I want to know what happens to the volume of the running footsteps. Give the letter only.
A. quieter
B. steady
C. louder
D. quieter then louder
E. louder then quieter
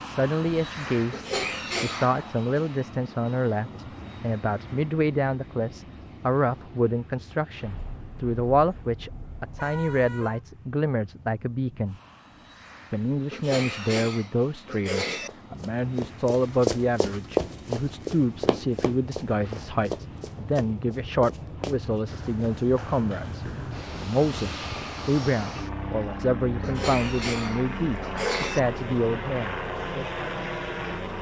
A.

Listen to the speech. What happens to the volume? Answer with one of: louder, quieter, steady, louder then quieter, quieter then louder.
steady.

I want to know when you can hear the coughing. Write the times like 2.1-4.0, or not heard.
1.1-2.1, 13.3-15.3, 26.6-28.6.